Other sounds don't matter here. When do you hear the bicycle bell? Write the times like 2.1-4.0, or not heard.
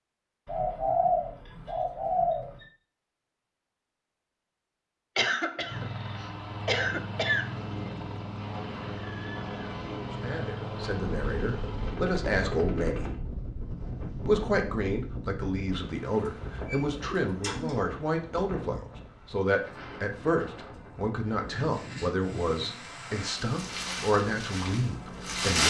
not heard.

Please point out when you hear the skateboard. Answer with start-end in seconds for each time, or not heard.
not heard.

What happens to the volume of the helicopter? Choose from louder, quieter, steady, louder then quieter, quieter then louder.
steady.